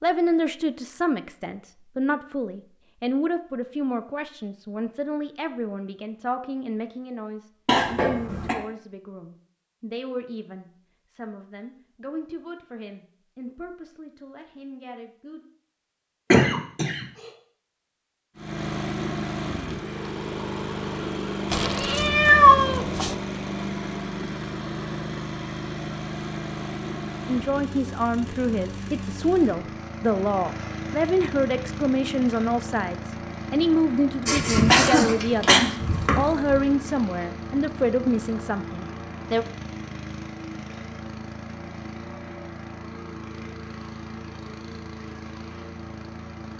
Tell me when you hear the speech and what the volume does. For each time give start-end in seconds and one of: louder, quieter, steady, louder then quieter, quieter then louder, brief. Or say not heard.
0.0-15.4 quieter
27.2-39.5 steady.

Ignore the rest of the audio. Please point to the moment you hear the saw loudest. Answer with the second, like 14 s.
35 s.